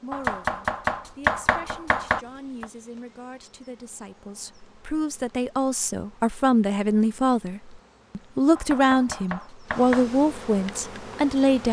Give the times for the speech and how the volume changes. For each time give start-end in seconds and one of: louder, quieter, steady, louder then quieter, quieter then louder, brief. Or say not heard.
0.0-11.6 louder.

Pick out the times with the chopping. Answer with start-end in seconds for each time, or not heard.
0.1-2.6, 8.6-10.1.